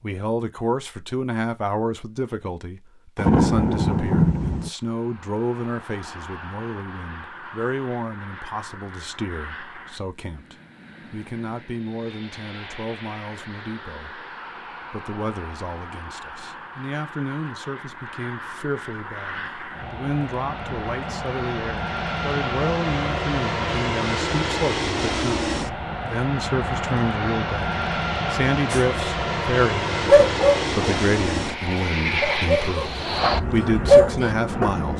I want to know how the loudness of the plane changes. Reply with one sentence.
The loudness of the plane goes up.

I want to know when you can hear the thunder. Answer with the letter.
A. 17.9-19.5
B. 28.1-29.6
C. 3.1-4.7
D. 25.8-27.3
C.